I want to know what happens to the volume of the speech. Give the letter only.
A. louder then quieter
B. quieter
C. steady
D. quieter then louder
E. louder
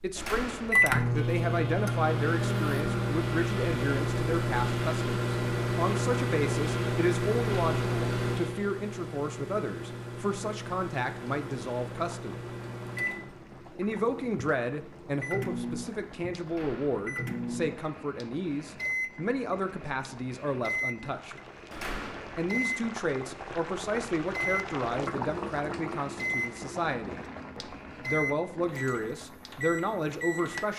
C.